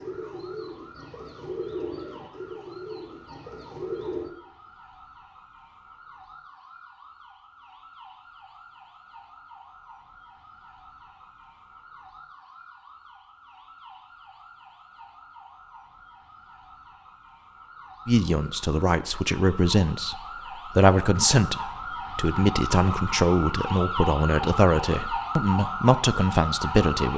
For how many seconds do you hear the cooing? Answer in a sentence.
You can hear the cooing for 4 seconds altogether.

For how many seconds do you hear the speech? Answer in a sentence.
You can hear the speech for 9 seconds altogether.